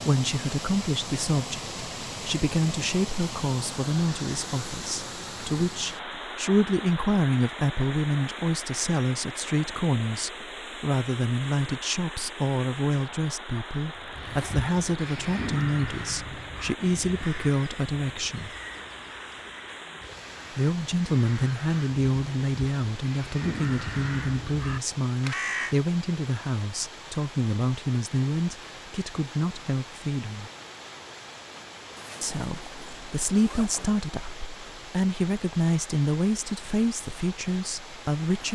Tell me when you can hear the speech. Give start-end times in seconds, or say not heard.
0.1-18.5, 20.5-30.5, 32.2-38.4.